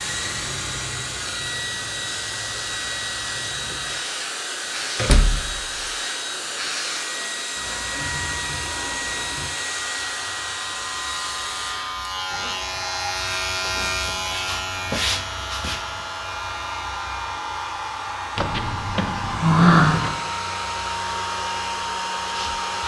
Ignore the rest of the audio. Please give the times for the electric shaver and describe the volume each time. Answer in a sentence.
The electric shaver can be heard from 0.0 to 22.8 s, getting louder then quieter.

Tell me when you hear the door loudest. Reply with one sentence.
The loudest moment of the door is at 20 seconds.